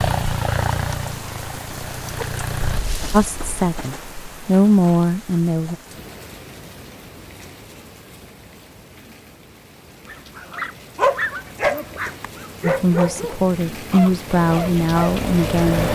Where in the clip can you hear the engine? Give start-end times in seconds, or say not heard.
0.0-2.8, 14.3-15.8.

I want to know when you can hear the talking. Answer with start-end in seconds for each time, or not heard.
3.1-5.8, 12.6-15.8.